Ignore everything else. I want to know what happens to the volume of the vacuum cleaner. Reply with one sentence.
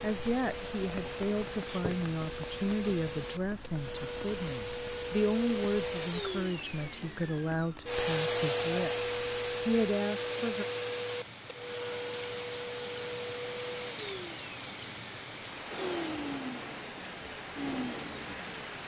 The loudness of the vacuum cleaner goes up, then down.